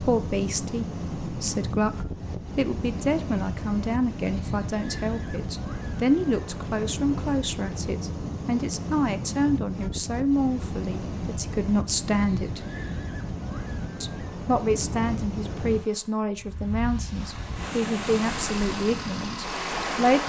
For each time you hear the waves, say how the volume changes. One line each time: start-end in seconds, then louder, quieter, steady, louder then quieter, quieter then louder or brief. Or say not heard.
0.0-20.2 steady.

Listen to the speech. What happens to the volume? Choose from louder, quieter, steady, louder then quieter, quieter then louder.
steady.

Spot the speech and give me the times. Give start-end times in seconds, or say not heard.
0.0-12.6, 14.0-20.2.